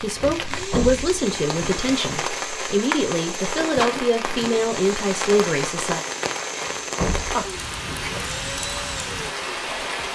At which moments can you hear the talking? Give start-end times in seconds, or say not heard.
0.0-6.0.